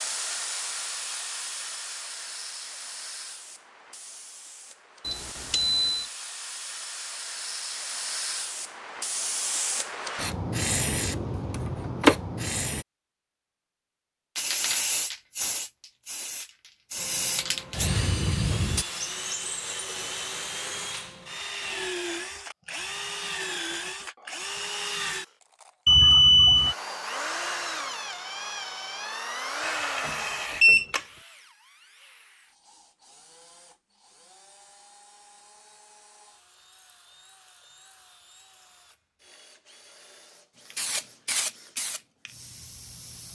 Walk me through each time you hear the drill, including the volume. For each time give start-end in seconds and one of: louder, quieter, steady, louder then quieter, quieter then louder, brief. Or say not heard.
16.9-43.2 quieter.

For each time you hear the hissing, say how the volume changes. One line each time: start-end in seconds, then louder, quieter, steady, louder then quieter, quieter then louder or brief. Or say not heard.
0.0-12.8 quieter then louder
14.3-18.9 quieter then louder
40.7-43.3 brief.